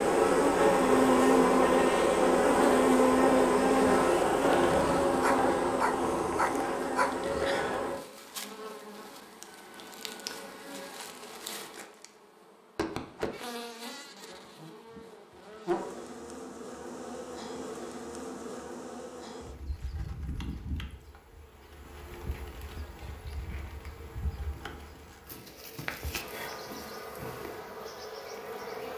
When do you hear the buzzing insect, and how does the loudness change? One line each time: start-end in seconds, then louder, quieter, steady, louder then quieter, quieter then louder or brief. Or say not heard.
0.0-28.9 quieter.